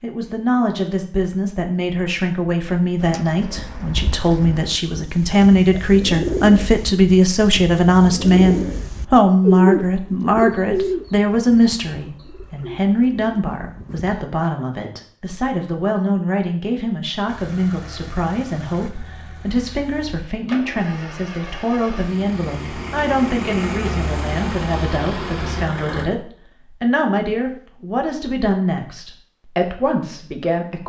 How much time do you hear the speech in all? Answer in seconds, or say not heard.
31 s.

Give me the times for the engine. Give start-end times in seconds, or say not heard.
17.2-26.1.